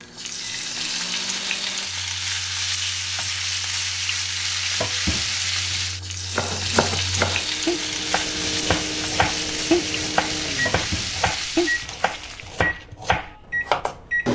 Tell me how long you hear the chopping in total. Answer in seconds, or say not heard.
8 s.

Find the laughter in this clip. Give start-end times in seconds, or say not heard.
not heard.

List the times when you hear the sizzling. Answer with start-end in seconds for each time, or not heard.
0.0-12.7.